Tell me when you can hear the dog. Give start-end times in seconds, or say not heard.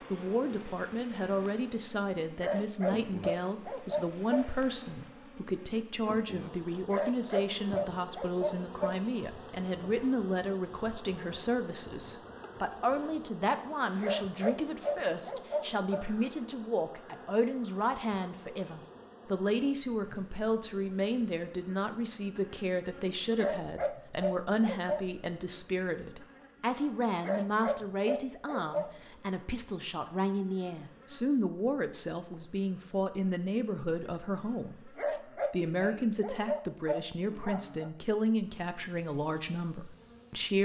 2.4-4.5, 6.9-8.9, 14.0-16.1, 23.4-25.1, 27.2-28.9, 35.0-37.9.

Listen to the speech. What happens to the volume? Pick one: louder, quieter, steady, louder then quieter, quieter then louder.
steady.